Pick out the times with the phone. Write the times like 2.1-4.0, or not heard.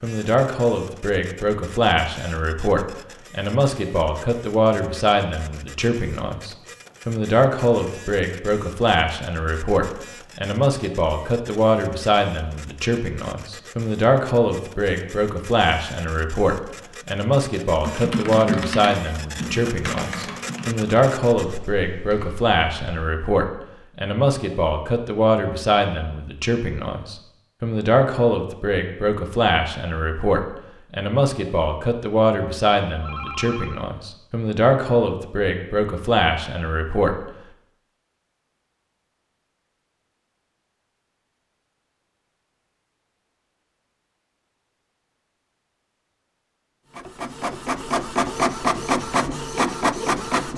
33.0-33.9.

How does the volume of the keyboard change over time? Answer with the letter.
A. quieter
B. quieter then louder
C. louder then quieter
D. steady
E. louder
A.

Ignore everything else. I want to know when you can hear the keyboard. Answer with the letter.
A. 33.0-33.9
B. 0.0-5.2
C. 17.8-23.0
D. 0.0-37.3
C.